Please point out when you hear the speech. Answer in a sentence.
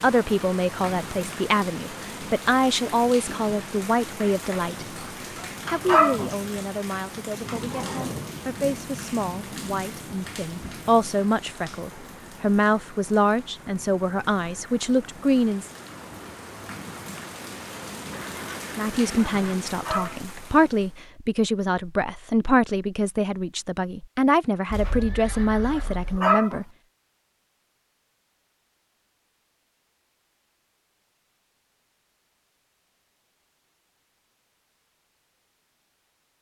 You can hear the speech from 0.0 to 5.0 s, from 5.7 to 15.7 s and from 18.8 to 26.6 s.